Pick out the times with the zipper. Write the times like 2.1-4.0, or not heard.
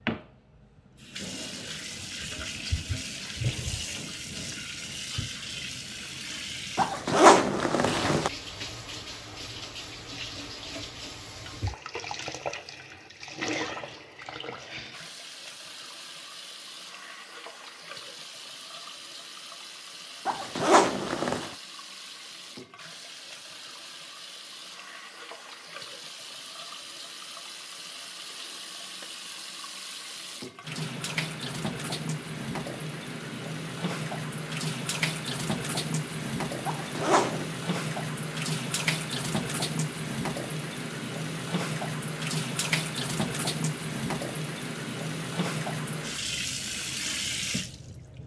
6.8-8.3, 20.2-21.5, 36.6-37.5.